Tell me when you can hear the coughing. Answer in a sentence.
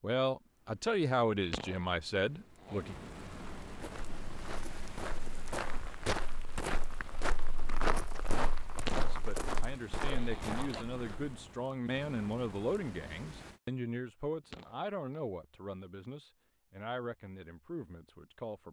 The coughing can't be heard in this clip.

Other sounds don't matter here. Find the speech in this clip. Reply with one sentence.
The speech can be heard from 0.0 to 3.0 s and from 8.9 to 18.6 s.